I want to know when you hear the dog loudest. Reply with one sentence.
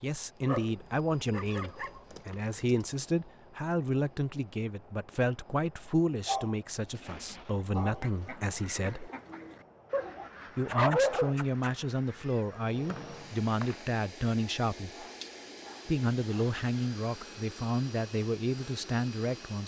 The volume of the dog peaks at 11 seconds.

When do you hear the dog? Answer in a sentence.
The dog can be heard from 0.5 to 2.8 s, from 6.2 to 8.0 s, from 9.9 to 11.7 s and from 14.9 to 16.4 s.